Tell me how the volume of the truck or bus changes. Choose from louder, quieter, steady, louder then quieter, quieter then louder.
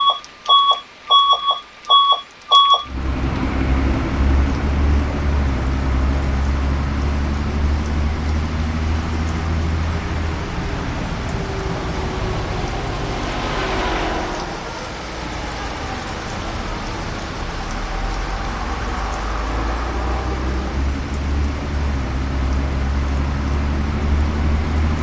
quieter.